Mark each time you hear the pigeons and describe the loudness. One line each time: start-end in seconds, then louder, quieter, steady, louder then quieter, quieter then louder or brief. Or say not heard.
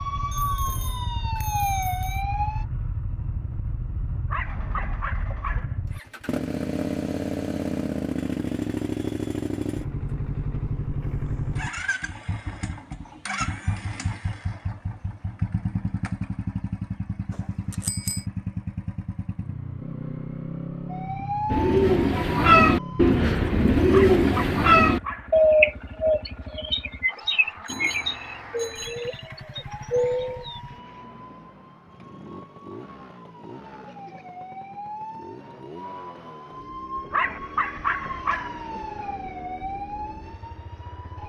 21.4-30.6 quieter.